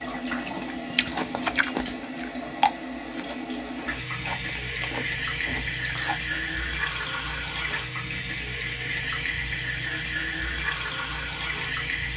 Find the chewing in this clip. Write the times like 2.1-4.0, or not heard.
0.1-6.3.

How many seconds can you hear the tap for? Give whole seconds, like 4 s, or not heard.
12 s.